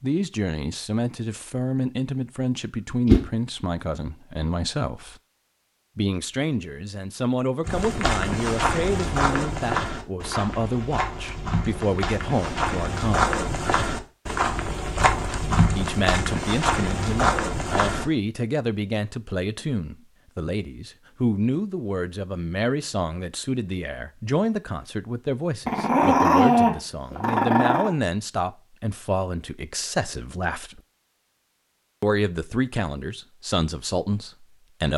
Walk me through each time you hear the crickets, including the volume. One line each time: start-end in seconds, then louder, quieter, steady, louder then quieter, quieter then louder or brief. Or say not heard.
not heard.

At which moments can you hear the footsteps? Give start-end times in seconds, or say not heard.
7.7-18.1.